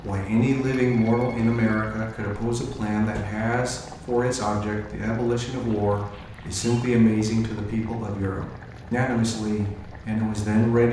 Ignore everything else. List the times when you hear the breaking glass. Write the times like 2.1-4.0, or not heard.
not heard.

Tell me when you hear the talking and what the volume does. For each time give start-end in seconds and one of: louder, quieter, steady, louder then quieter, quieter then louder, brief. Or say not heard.
0.0-10.8 steady.